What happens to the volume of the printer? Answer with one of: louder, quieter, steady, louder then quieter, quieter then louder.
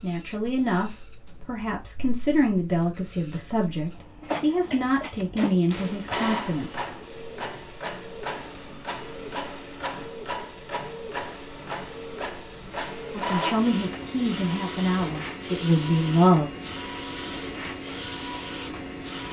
louder.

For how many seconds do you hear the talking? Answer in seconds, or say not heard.
10 s.